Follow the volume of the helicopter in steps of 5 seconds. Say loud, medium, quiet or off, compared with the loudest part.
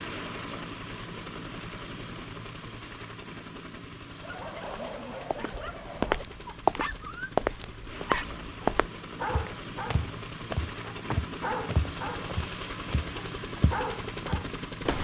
loud, medium, loud.